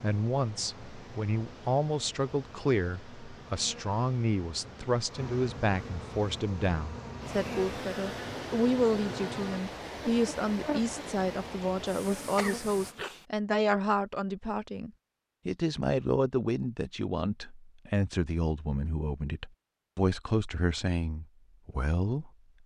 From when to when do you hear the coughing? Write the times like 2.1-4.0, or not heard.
12.3-13.2.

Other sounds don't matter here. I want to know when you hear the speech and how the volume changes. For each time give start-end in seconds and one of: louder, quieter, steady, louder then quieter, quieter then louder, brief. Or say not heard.
0.0-22.6 steady.